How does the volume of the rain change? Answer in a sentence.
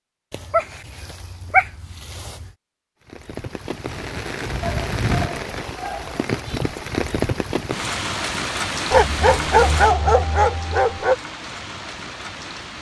The volume of the rain goes down.